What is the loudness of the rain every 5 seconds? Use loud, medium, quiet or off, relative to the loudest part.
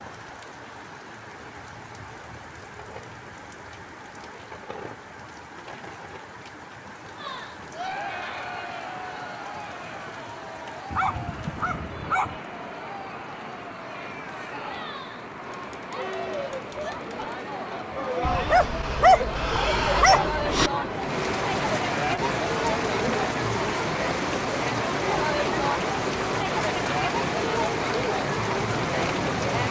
quiet, quiet, medium, medium, loud, loud.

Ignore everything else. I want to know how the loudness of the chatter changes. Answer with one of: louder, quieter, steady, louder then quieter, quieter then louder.
louder.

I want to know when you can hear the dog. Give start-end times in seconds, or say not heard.
10.9-12.4, 18.2-20.7.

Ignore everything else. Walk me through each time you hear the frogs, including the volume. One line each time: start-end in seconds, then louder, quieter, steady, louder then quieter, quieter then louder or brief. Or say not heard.
not heard.